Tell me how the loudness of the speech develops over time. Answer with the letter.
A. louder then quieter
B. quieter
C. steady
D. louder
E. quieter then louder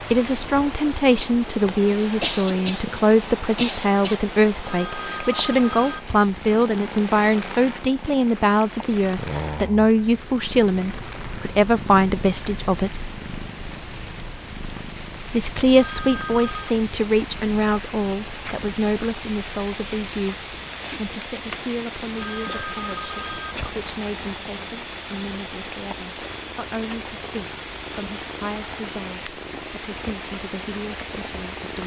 B.